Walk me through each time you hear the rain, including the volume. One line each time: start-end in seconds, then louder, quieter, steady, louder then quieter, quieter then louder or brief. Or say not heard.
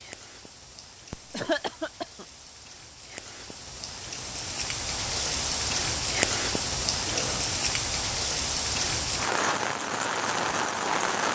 0.0-11.2 louder.